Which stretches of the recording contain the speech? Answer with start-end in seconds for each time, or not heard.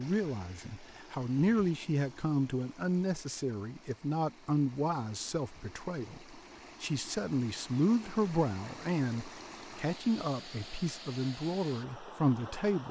0.0-12.8.